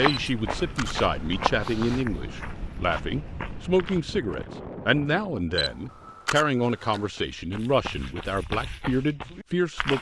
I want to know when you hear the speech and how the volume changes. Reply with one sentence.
The speech can be heard from 0.0 to 9.9 s, at a steady volume.